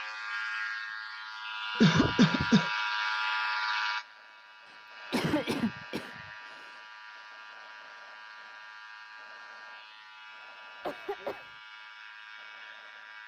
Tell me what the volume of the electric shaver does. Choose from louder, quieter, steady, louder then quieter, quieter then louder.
quieter.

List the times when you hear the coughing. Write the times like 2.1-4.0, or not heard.
1.8-2.6, 4.7-6.7, 10.8-11.4.